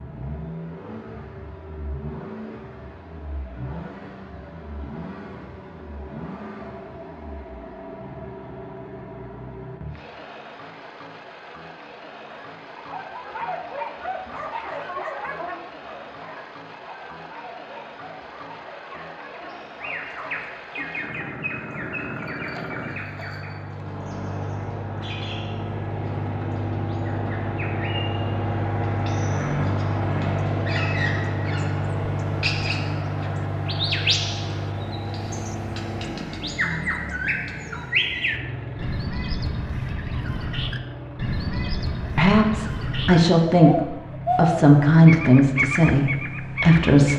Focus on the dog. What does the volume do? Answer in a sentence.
The loudness of the dog goes down.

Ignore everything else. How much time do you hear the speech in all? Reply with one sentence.
You can hear the speech for 5 seconds altogether.